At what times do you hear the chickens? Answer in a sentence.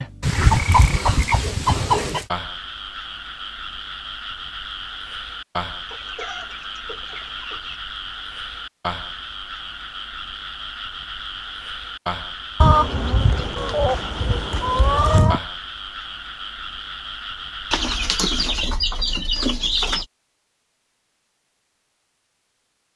The chickens can be heard from 0.2 to 2.2 s, from 5.8 to 7.8 s, from 12.6 to 15.4 s and from 17.7 to 20.1 s.